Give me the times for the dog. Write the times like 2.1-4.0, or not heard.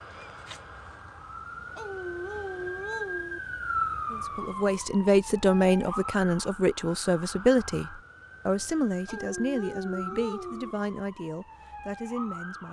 1.8-3.4, 9.1-10.8.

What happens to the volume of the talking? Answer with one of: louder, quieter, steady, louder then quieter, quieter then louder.
quieter.